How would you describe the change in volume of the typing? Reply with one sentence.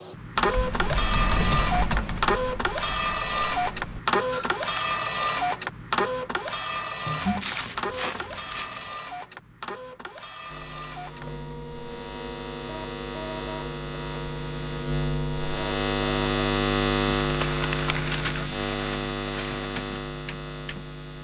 The volume of the typing goes down, then up.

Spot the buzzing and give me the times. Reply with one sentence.
The buzzing can be heard from 10.4 to 21.1 s.